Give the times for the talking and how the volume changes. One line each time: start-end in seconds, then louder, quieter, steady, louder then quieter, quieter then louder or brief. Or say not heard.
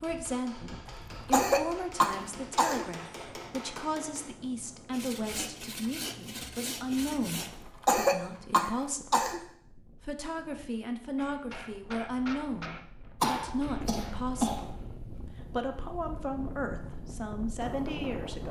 0.0-18.4 steady.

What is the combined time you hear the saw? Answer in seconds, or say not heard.
3 s.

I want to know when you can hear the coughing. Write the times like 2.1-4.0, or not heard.
0.8-3.3, 7.4-9.4, 13.2-14.7.